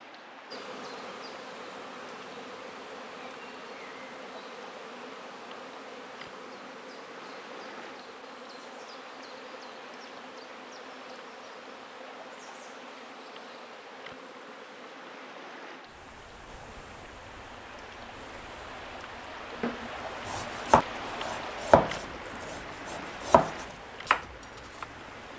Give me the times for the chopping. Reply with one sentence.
You can hear the chopping from 19.6 to 24.9 s.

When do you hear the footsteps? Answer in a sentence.
The footsteps can't be heard in this clip.